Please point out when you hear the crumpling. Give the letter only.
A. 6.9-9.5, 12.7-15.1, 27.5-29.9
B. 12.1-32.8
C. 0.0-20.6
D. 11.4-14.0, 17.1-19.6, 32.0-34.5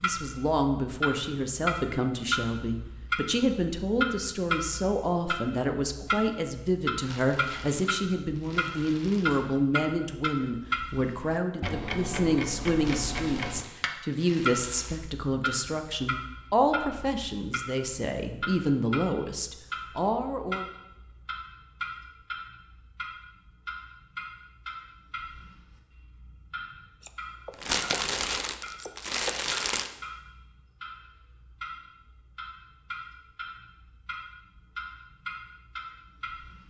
A.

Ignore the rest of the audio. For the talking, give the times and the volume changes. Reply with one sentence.
The talking can be heard from 0.0 to 20.6 s, at a steady volume.